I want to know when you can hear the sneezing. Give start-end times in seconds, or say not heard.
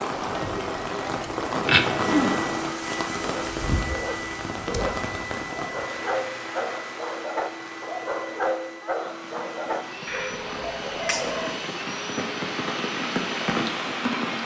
1.0-2.5, 10.1-11.3.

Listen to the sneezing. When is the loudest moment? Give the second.
2 s.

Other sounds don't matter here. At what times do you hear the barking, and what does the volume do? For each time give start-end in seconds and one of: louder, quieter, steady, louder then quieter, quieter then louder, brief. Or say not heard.
3.1-11.6 steady.